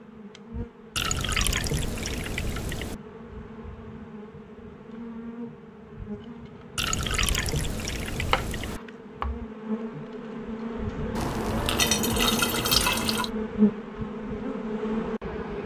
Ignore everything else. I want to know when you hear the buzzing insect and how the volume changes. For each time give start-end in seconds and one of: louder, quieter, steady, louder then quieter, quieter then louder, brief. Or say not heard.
0.0-15.6 louder.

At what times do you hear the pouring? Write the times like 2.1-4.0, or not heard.
0.9-3.0, 6.8-8.8, 11.2-13.3.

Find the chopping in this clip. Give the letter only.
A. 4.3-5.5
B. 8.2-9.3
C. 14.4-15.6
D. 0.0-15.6
B.